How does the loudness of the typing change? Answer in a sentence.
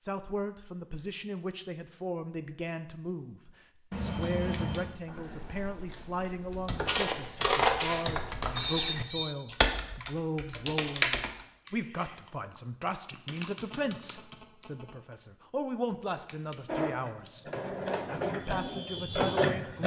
The loudness of the typing goes up, then down.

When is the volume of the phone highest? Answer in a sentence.
The volume of the phone peaks at 9 seconds.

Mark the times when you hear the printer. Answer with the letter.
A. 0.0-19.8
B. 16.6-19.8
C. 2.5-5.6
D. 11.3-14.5
B.